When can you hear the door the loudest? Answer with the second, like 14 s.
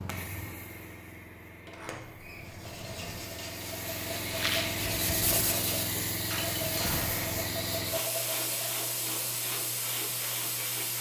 7 s.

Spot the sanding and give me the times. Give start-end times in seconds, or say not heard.
2.4-8.8.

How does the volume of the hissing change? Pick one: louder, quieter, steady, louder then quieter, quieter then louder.
louder.